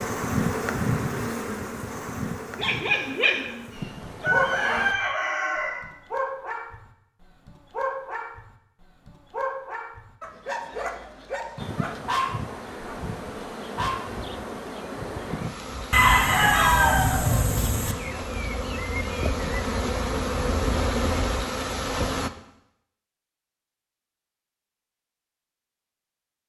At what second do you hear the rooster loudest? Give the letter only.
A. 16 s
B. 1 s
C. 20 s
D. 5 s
A.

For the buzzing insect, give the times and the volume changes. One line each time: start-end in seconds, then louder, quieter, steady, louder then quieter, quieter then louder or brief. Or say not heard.
0.0-5.0 quieter then louder
11.6-22.3 louder.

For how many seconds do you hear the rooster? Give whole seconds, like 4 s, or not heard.
4 s.